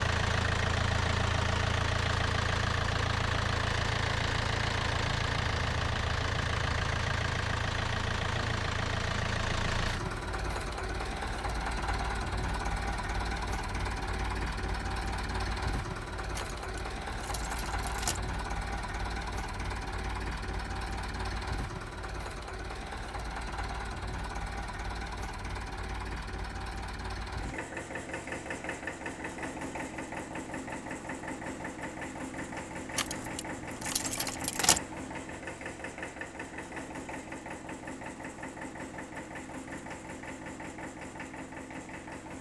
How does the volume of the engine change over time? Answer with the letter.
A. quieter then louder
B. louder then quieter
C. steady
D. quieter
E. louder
D.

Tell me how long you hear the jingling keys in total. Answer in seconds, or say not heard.
4 s.